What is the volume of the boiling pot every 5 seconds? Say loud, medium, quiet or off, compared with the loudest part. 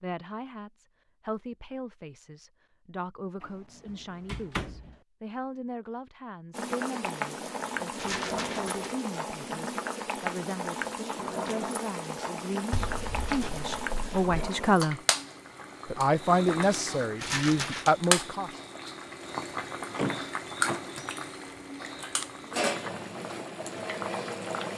off, loud, loud, loud, loud.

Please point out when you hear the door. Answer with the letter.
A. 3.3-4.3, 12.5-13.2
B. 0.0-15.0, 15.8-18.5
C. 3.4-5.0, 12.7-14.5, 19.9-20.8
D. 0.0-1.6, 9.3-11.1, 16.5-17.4
C.